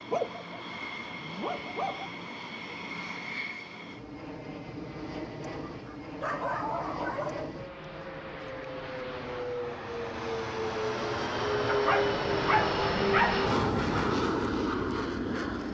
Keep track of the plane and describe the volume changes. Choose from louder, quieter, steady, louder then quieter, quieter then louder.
louder.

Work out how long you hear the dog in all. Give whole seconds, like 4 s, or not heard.
6 s.